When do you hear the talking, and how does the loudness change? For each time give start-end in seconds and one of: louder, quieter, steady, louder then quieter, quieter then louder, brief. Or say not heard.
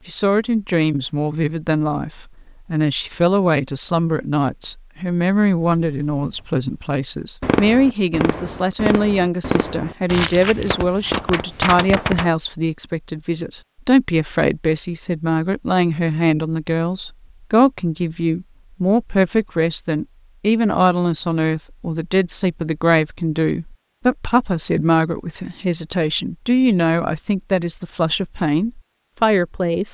0.1-29.8 steady.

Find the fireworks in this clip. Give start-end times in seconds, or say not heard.
5.8-6.5, 7.4-12.3.